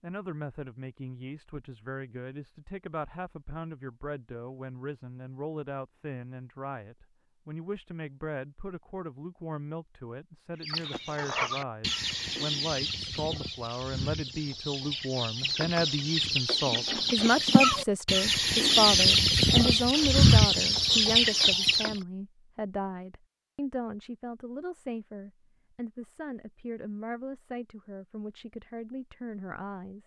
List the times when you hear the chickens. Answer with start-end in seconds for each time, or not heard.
10.6-22.0.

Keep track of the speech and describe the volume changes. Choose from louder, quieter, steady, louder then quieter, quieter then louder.
louder then quieter.